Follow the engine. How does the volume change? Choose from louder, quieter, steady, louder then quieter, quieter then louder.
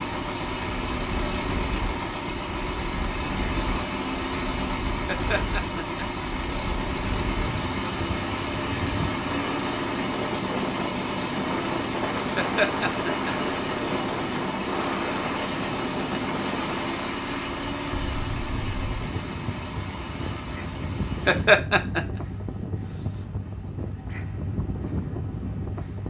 quieter.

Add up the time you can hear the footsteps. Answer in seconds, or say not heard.
not heard.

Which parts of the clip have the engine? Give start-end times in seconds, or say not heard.
0.0-26.0.